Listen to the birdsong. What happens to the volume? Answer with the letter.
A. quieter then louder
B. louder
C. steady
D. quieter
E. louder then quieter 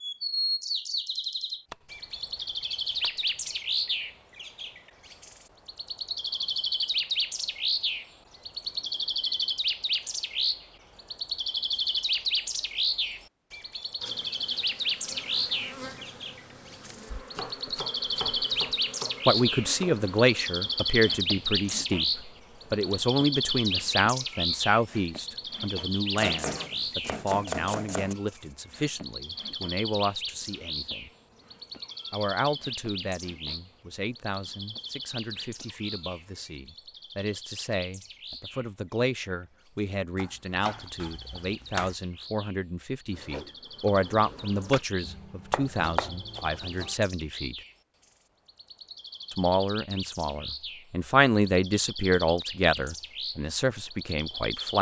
D.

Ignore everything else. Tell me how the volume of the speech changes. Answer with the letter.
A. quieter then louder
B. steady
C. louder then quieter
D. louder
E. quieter
A.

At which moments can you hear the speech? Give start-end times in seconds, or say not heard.
19.2-31.1, 32.1-47.5, 49.3-54.7.